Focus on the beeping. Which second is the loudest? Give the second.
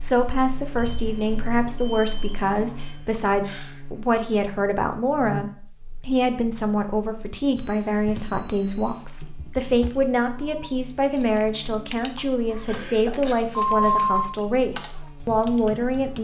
14 s.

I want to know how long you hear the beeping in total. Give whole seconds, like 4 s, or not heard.
5 s.